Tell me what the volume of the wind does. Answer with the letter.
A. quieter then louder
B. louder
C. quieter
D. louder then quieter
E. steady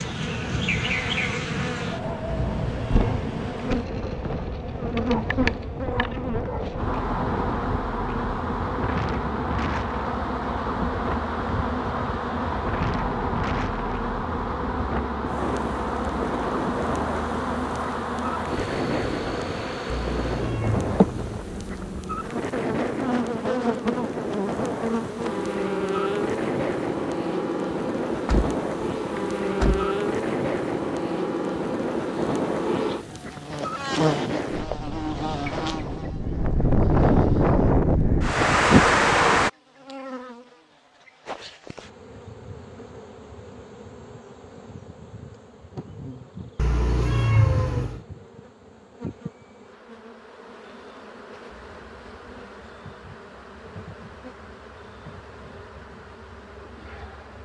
B.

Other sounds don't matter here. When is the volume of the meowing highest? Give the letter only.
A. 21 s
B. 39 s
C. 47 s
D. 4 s
C.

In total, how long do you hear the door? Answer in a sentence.
The door can be heard for 2 seconds in total.